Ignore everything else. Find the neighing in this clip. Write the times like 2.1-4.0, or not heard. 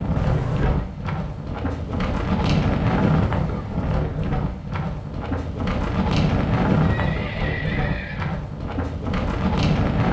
0.1-0.8, 6.8-8.4.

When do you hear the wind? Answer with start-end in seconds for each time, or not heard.
0.0-10.0.